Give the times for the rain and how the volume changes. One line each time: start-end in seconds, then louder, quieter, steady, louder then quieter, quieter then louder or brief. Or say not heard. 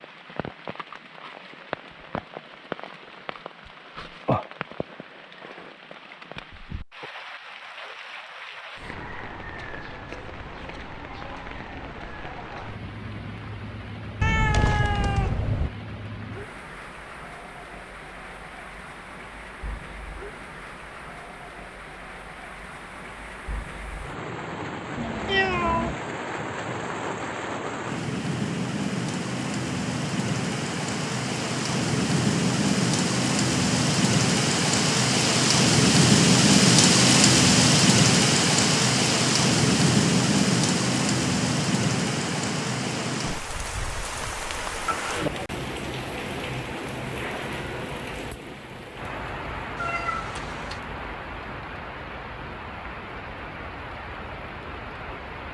0.0-55.4 louder then quieter.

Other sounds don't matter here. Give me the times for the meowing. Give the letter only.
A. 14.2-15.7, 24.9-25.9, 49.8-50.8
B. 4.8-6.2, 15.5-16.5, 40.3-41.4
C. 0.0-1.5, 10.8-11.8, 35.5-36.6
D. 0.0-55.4
A.